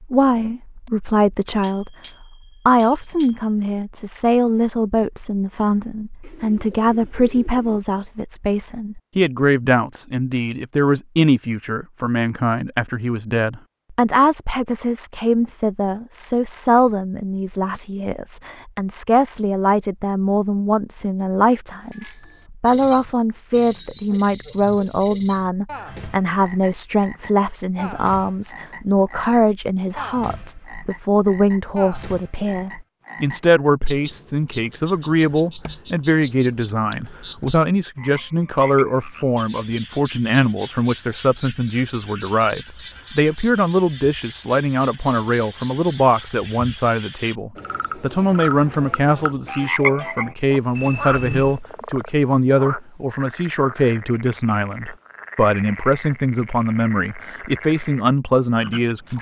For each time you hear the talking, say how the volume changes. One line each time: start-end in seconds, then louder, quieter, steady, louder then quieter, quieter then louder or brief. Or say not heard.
0.0-59.1 steady.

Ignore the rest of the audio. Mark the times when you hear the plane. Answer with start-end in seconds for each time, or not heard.
not heard.